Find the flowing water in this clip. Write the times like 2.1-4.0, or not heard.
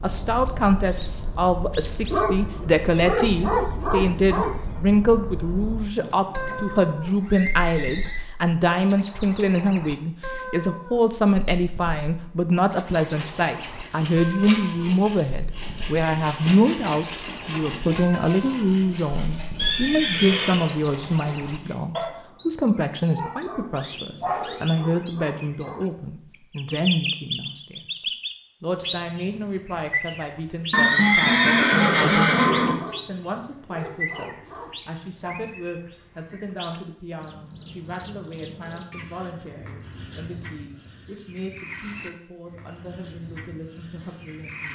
not heard.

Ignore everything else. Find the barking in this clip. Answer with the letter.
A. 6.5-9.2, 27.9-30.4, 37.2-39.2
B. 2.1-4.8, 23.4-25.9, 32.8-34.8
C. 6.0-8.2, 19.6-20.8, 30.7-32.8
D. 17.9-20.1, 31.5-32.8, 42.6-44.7
B.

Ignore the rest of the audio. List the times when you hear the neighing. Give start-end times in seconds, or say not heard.
6.0-8.2, 19.6-20.8, 30.7-32.8.